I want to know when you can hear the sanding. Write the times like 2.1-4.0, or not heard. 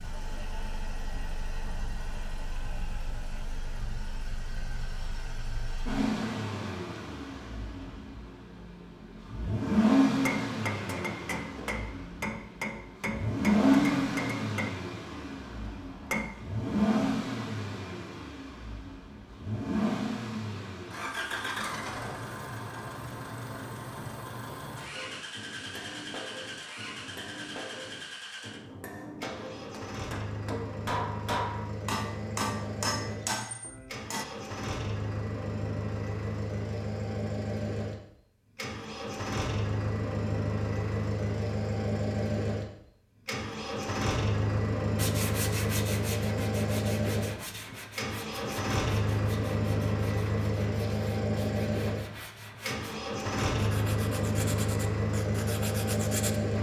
45.0-56.4.